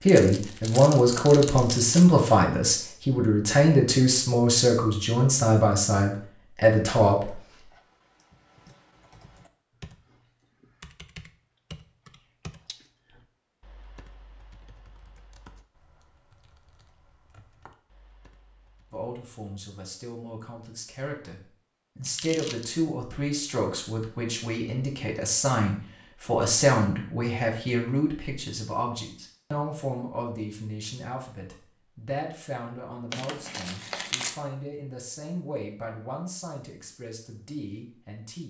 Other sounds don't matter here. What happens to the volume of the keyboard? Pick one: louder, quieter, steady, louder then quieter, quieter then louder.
louder then quieter.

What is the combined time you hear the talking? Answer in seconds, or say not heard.
27 s.